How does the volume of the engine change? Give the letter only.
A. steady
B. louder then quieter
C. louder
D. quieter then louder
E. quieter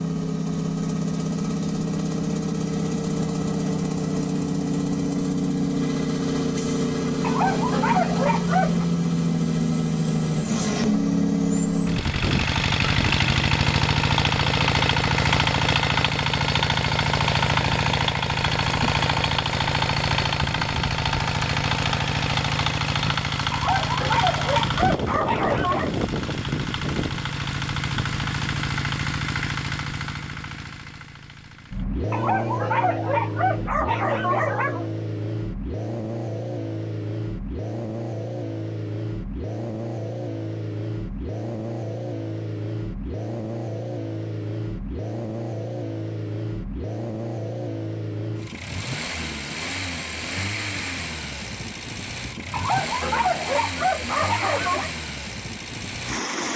E.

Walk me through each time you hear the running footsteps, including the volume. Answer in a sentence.
The running footsteps can't be heard in this clip.